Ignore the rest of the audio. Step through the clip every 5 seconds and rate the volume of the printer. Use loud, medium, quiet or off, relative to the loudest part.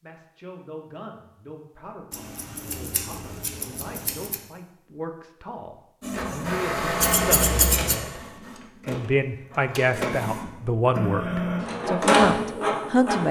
off, medium, loud.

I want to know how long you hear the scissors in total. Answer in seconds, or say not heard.
3 s.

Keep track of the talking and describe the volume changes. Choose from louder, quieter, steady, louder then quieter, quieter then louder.
louder.